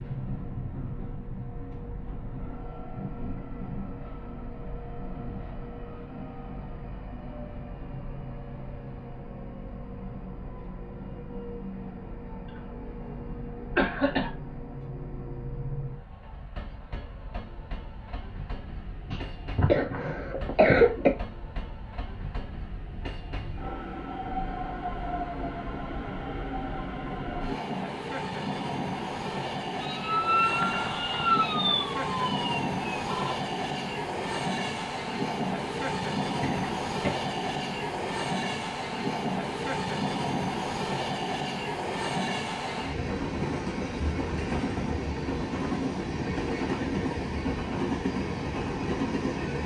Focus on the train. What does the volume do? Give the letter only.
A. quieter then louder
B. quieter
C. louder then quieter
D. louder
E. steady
D.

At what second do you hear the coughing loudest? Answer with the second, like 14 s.
21 s.